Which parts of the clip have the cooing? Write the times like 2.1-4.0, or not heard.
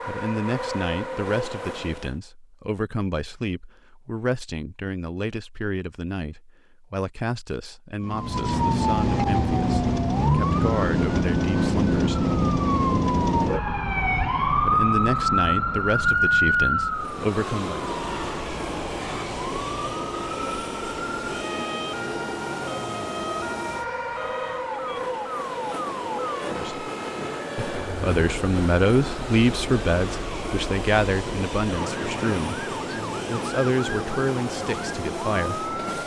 not heard.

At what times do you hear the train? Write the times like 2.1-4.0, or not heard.
0.0-2.2, 16.9-36.0.